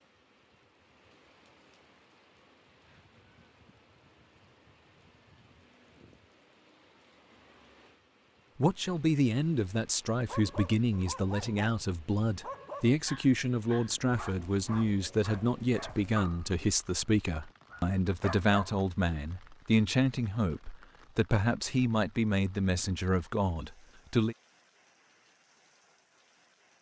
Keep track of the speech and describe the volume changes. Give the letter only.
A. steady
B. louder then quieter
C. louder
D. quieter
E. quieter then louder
A.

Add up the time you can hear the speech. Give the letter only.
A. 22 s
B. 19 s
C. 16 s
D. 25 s
C.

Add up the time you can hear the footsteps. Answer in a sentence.
You can't hear the footsteps here.